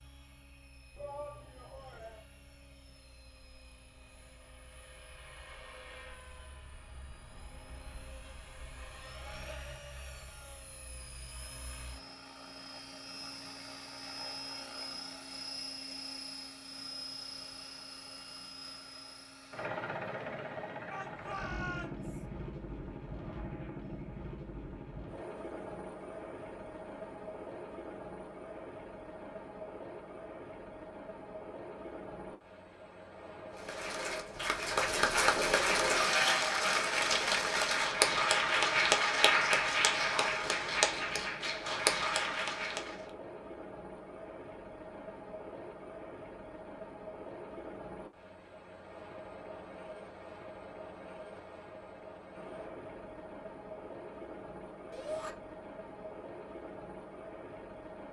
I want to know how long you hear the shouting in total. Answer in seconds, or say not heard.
3 s.